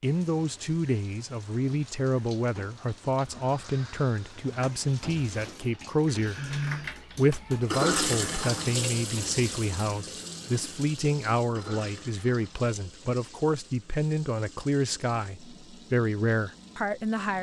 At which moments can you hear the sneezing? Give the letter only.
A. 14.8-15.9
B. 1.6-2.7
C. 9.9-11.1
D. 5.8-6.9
D.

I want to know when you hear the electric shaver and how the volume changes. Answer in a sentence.
You can't hear the electric shaver here.